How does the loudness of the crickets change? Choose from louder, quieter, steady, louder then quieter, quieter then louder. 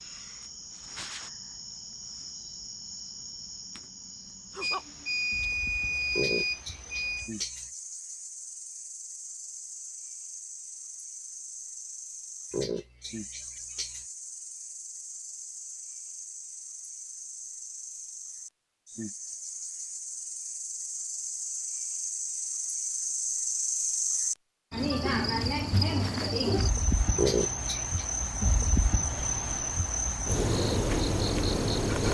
louder.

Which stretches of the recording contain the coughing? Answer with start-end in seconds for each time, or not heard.
6.2-7.7, 12.5-14.1, 27.1-28.1.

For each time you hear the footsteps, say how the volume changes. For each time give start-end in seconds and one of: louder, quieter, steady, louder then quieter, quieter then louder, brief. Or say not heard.
not heard.